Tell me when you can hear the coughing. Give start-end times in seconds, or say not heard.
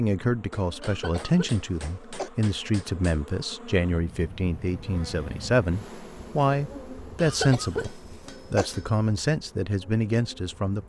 0.8-2.3, 7.2-8.7.